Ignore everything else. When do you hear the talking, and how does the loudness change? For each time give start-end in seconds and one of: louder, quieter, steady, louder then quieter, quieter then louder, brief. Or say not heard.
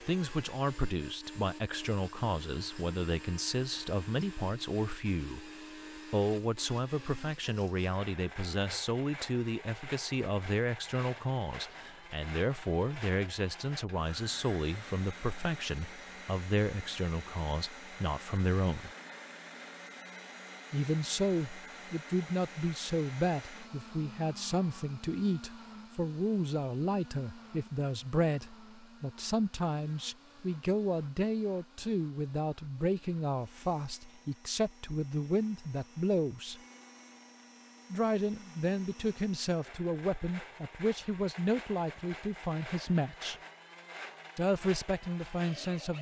0.1-5.5 steady
6.1-18.9 steady
20.7-36.6 steady
37.9-43.4 steady
44.4-45.9 brief.